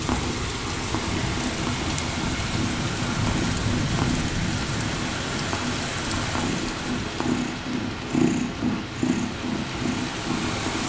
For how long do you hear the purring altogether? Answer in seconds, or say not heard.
11 s.